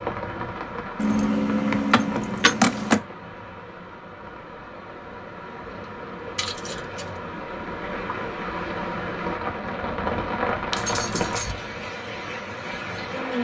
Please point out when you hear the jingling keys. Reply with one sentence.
The jingling keys can be heard from 0.9 to 3.0 s, from 6.3 to 7.1 s and from 10.7 to 11.6 s.